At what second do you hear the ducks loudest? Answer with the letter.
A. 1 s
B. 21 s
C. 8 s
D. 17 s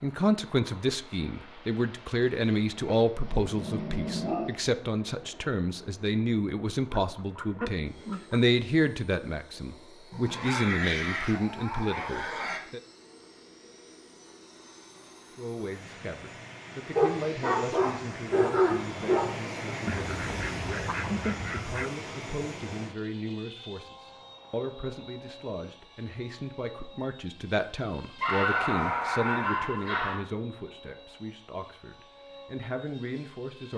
B.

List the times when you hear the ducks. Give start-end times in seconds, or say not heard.
6.9-8.4, 19.9-21.9.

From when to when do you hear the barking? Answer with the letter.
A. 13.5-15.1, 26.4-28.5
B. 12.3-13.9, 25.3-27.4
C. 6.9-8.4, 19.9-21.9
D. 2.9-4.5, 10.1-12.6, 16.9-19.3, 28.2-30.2
D.